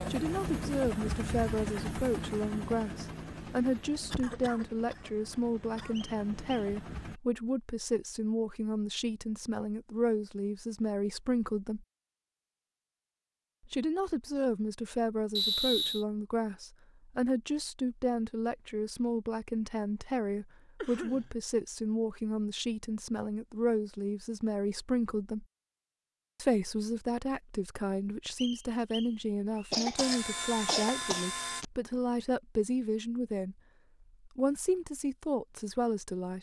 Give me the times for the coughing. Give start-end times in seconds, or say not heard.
4.1-6.0, 20.8-21.3, 29.7-31.6.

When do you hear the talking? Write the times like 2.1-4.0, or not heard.
0.1-11.8, 13.7-25.4, 26.4-33.5, 34.2-36.3.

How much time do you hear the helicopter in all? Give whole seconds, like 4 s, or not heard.
9 s.